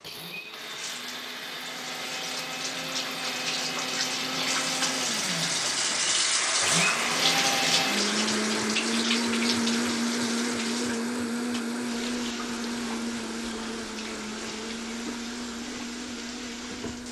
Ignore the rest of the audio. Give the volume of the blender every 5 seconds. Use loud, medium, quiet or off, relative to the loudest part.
medium, loud, loud, medium.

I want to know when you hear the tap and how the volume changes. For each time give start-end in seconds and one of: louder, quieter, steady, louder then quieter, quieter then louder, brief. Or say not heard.
0.0-17.0 louder then quieter.